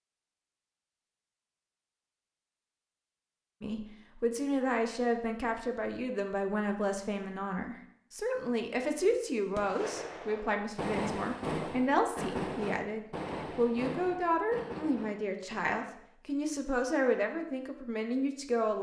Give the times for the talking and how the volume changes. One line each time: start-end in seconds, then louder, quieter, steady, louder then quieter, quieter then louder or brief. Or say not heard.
3.6-18.7 steady.